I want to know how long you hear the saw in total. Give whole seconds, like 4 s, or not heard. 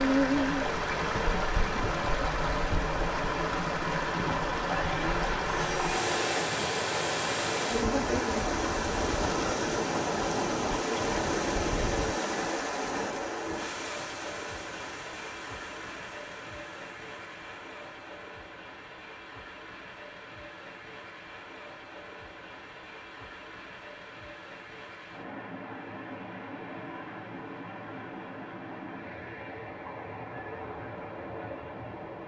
2 s.